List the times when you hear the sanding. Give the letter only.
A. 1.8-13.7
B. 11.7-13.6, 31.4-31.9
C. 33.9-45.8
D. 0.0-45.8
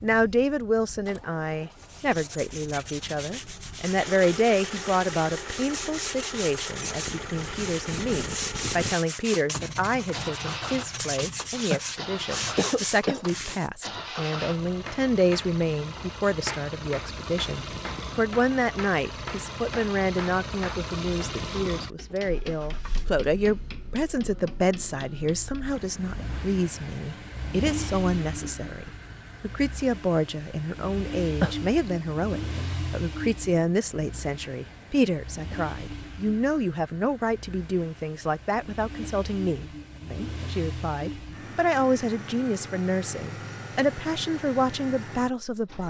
A.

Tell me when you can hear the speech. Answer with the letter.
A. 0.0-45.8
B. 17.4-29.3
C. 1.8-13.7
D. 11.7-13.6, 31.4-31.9
A.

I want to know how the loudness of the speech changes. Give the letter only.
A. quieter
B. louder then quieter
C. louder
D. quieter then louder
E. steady
E.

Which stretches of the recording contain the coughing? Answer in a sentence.
The coughing can be heard from 11.7 to 13.6 s and from 31.4 to 31.9 s.